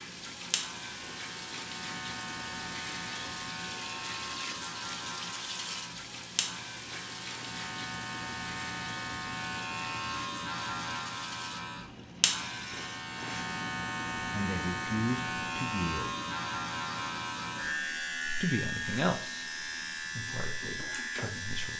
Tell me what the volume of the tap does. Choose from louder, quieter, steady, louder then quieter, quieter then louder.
quieter.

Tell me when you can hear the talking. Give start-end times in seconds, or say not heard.
14.2-16.1, 18.4-21.7.